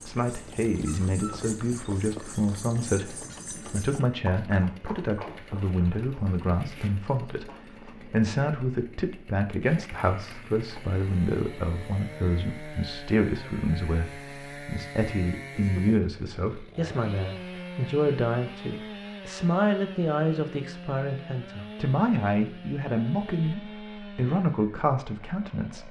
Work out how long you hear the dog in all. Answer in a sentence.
You can't hear the dog here.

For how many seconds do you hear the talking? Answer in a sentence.
You can hear the talking for 26 seconds altogether.